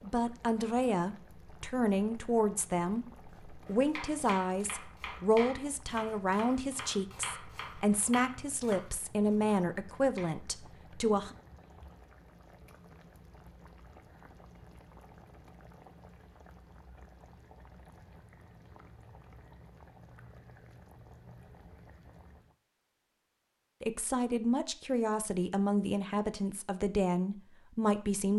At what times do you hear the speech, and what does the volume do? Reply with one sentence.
You can hear the speech from 0.0 to 11.3 s, at a steady volume; and from 23.8 to 28.3 s, at a steady volume.